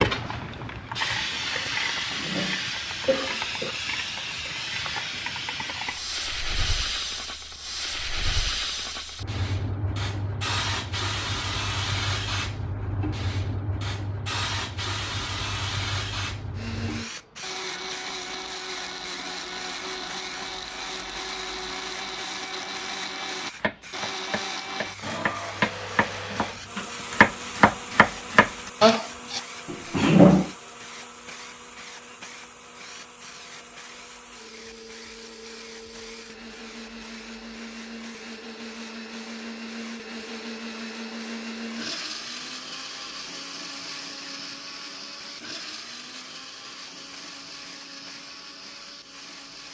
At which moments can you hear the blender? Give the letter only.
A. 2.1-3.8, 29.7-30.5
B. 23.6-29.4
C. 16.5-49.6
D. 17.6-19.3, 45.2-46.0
C.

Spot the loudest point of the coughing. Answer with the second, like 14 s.
30 s.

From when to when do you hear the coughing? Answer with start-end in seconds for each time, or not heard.
2.1-3.8, 29.7-30.5.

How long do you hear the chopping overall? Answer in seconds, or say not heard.
6 s.